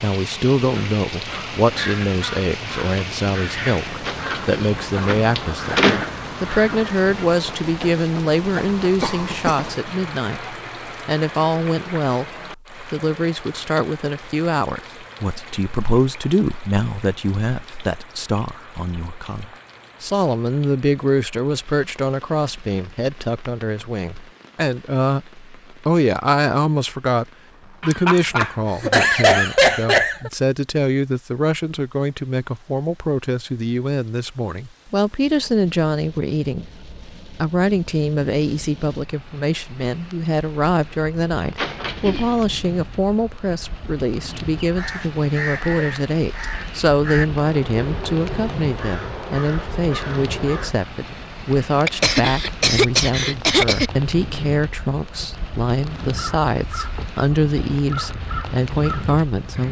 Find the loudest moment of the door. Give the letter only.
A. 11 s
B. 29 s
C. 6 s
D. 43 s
C.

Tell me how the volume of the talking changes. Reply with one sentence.
The loudness of the talking stays about the same.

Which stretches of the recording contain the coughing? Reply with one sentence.
You can hear the coughing from 9.0 to 9.6 s, from 27.8 to 30.3 s and from 51.9 to 53.9 s.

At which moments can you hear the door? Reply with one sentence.
The door can be heard from 4.0 to 6.0 s and from 41.5 to 42.5 s.